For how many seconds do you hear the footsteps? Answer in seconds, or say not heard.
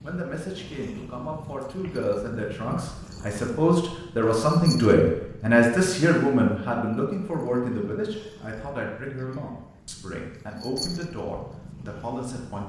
not heard.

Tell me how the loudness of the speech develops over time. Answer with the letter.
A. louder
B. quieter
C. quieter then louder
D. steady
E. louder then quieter
E.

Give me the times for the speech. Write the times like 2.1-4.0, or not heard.
0.0-12.6.